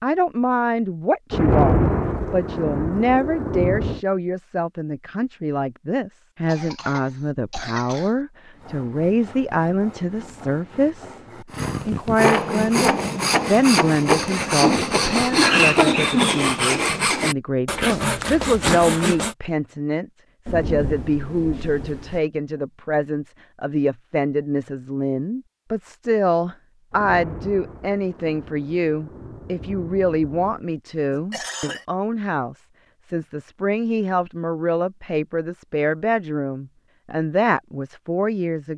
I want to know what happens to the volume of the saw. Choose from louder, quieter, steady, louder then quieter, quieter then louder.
louder.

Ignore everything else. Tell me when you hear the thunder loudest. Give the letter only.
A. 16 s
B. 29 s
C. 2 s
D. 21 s
C.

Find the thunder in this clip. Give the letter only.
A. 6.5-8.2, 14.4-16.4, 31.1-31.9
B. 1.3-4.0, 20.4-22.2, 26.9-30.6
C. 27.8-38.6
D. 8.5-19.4
B.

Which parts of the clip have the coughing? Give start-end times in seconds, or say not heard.
6.5-8.2, 14.4-16.4, 31.1-31.9.